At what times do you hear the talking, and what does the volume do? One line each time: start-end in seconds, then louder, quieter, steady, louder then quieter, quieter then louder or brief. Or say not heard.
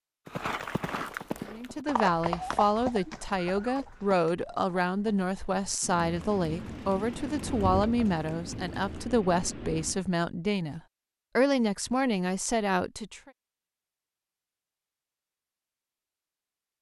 1.4-13.3 steady.